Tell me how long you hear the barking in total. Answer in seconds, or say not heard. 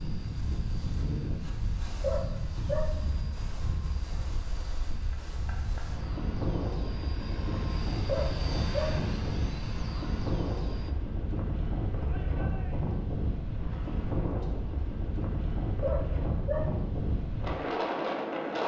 3 s.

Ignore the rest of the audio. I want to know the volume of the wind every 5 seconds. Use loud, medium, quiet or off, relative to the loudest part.
medium, loud, loud, loud.